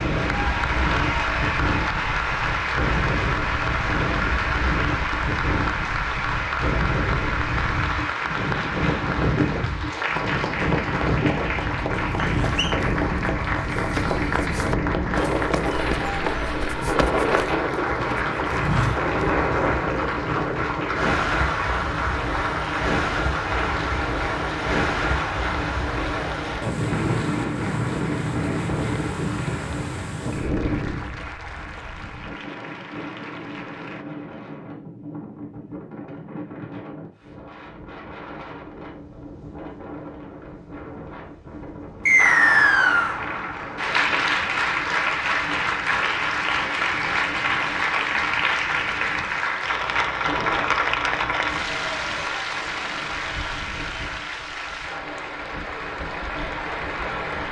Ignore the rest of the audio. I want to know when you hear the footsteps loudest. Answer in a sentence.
The loudest moment of the footsteps is at 19 seconds.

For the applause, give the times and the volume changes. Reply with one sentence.
You can hear the applause from 0.0 to 34.0 s, getting quieter; and from 42.1 to 57.4 s, getting quieter.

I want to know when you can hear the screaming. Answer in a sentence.
You can't hear the screaming here.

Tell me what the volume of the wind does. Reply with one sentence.
The loudness of the wind goes down.